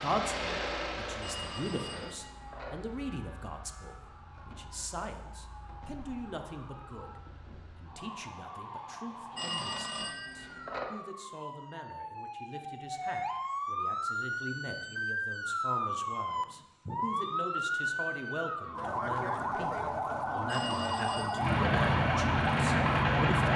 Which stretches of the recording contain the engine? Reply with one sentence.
You can hear the engine from 0.0 to 2.1 s and from 21.4 to 23.5 s.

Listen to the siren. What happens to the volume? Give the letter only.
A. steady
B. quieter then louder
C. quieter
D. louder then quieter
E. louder
E.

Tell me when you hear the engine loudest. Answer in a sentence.
The loudest moment of the engine is at 23 seconds.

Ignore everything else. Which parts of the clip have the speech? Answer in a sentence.
You can hear the speech from 0.0 to 23.5 s.